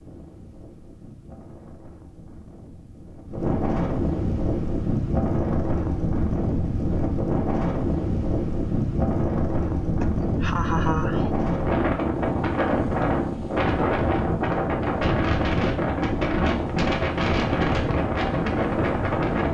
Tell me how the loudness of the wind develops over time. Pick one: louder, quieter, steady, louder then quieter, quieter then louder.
louder.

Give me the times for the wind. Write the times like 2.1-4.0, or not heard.
0.0-19.4.